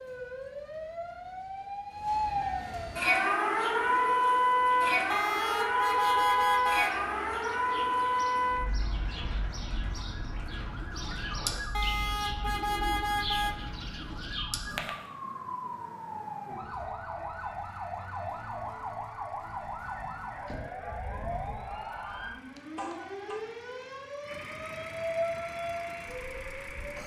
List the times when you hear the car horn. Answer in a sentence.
You can hear the car horn from 5.1 to 7.0 s, from 11.7 to 13.6 s and from 22.1 to 23.4 s.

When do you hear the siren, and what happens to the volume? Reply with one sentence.
The siren can be heard from 0.0 to 27.0 s, getting quieter.